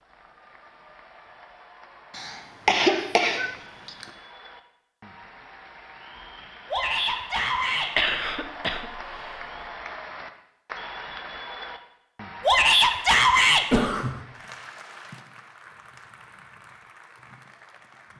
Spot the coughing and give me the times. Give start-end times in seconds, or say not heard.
2.1-4.0, 8.0-8.8, 13.7-14.2.